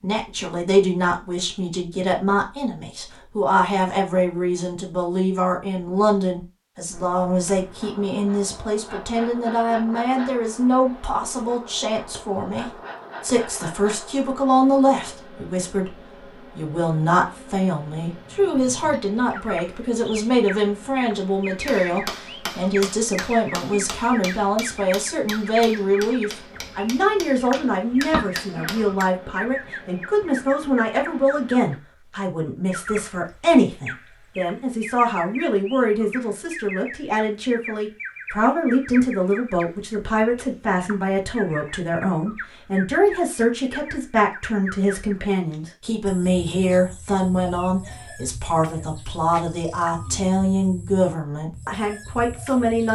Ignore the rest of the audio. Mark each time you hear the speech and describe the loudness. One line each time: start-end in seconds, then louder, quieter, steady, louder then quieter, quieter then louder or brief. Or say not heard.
0.0-52.9 steady.